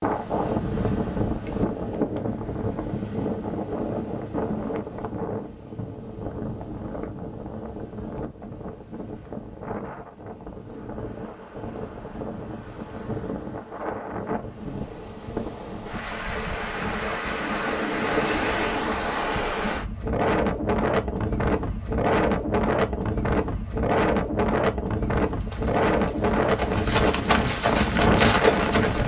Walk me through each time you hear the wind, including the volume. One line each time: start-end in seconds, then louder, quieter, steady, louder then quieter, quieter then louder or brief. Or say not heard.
0.0-29.0 quieter then louder.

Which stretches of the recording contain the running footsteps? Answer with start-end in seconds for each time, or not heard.
25.1-29.0.